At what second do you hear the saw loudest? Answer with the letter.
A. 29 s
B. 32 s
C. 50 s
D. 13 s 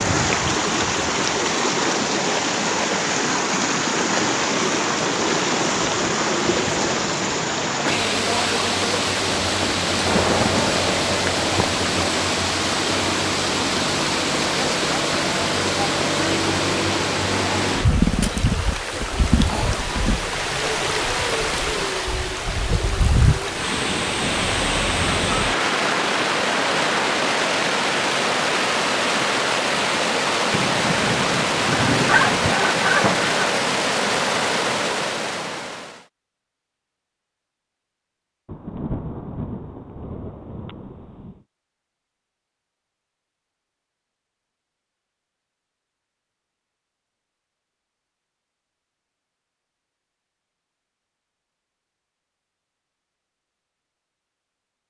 B.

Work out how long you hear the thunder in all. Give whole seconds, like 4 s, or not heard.
7 s.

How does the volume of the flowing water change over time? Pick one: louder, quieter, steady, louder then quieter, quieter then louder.
steady.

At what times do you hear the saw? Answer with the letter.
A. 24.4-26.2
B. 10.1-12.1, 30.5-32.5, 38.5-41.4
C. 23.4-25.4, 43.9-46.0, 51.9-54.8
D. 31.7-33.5
D.